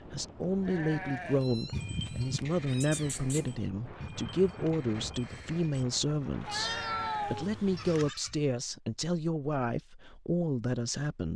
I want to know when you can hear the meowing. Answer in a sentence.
The meowing can be heard from 1.4 to 3.6 s and from 6.5 to 8.1 s.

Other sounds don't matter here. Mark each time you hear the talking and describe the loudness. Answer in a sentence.
You can hear the talking from 0.1 to 11.3 s, at a steady volume.